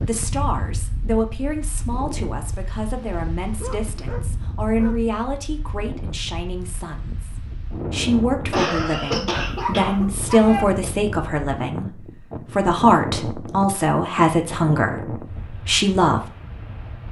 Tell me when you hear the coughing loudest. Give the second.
9 s.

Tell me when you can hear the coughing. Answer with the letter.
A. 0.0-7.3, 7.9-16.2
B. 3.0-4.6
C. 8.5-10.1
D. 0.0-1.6
C.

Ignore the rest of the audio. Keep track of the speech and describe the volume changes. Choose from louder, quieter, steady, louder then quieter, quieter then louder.
louder.